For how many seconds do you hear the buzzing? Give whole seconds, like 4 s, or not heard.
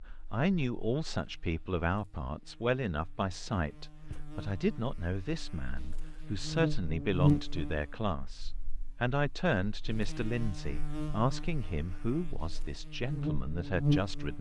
14 s.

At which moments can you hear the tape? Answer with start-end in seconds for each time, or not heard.
not heard.